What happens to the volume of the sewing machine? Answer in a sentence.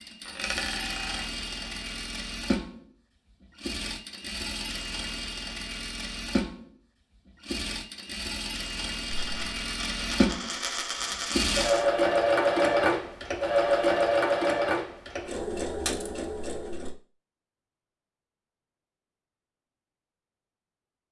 The volume of the sewing machine goes up.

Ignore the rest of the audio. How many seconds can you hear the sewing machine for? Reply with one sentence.
The sewing machine can be heard for 17 seconds in total.